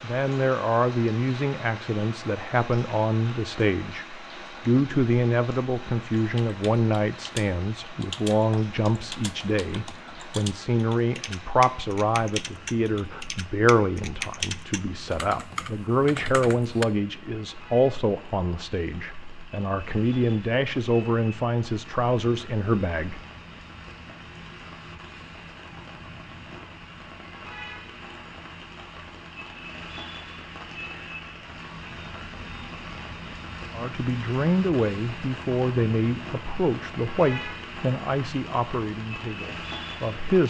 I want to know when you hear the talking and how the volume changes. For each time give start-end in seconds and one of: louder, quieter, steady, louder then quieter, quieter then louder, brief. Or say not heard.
0.0-23.2 steady
33.7-40.4 quieter.